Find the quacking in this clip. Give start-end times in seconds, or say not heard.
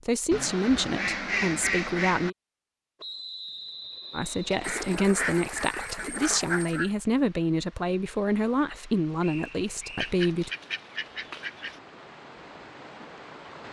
0.3-2.3, 4.6-6.9, 9.9-11.8.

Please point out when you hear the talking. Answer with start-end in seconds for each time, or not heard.
0.1-2.4, 4.1-10.5.